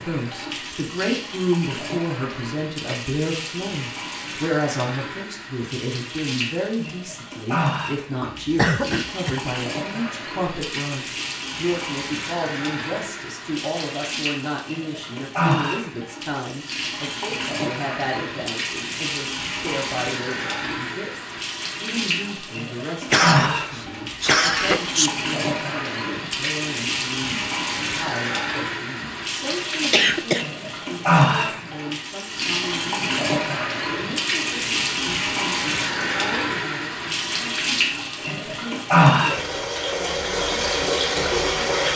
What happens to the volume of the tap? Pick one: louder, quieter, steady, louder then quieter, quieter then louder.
louder.